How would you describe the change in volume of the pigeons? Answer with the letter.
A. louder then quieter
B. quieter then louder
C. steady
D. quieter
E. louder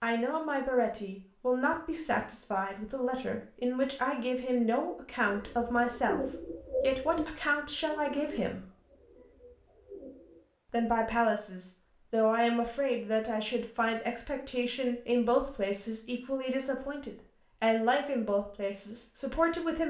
D.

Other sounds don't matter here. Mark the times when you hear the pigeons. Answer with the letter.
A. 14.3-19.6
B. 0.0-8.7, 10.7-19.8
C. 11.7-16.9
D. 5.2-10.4
D.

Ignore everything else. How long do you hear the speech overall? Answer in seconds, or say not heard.
18 s.